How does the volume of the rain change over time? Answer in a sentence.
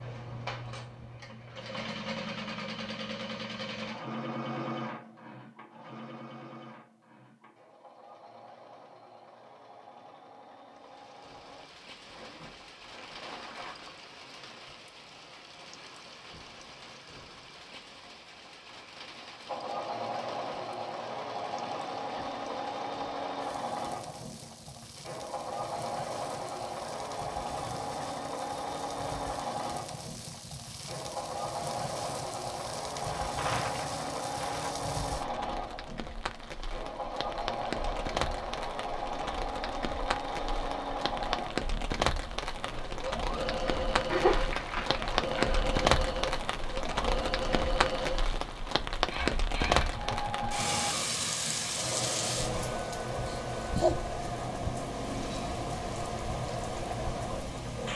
The loudness of the rain goes up.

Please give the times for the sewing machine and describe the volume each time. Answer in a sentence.
You can hear the sewing machine from 0.0 to 11.7 s, getting quieter; and from 19.4 to 57.9 s, at a steady volume.